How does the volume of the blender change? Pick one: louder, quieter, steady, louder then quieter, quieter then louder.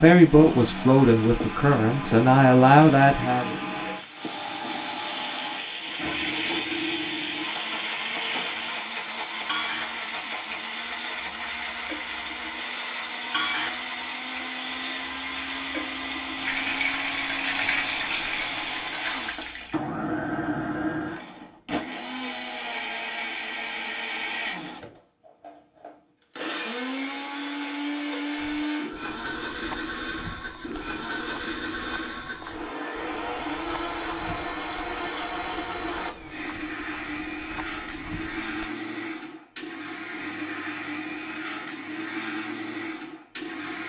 steady.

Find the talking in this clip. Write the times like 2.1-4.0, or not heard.
0.0-3.5.